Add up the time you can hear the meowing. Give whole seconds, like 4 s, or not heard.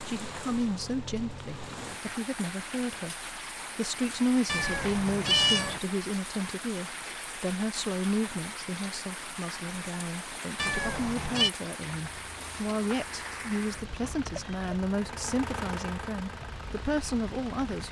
2 s.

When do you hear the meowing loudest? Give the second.
5 s.